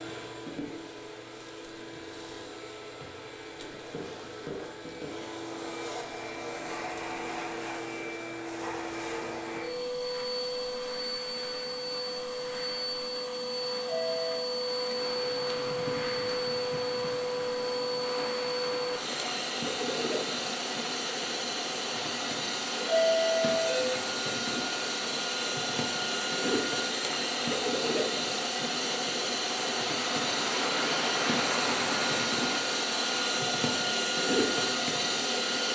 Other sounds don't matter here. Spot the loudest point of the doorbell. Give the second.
23 s.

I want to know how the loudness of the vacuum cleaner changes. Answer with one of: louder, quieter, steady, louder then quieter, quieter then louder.
louder.